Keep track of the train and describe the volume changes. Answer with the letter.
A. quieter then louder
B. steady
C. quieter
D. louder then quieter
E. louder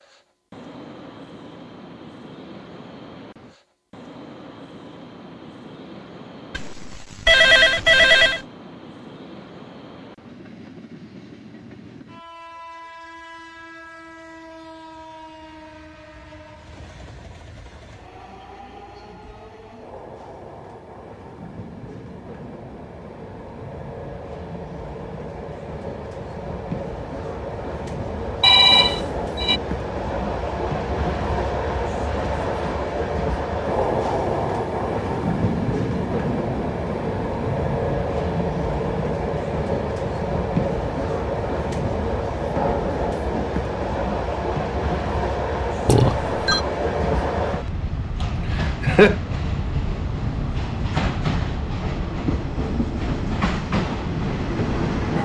E.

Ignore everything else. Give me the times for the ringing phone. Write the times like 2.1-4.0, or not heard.
6.5-8.4, 28.4-29.6, 45.9-46.6.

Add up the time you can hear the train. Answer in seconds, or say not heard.
55 s.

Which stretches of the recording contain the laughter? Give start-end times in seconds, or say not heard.
48.2-49.1.